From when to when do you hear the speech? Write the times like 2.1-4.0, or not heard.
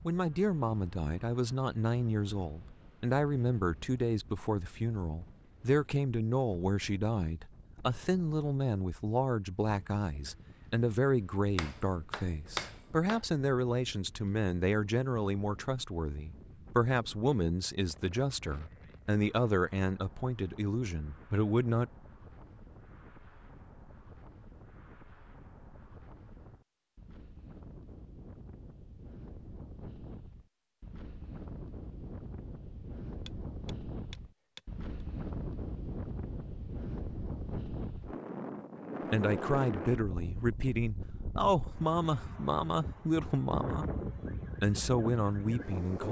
0.1-21.9, 39.1-43.9, 44.6-46.0.